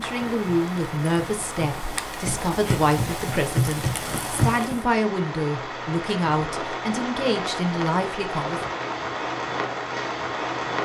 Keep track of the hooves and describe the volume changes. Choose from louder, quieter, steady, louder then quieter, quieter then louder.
louder.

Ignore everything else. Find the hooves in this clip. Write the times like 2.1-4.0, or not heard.
0.0-4.8.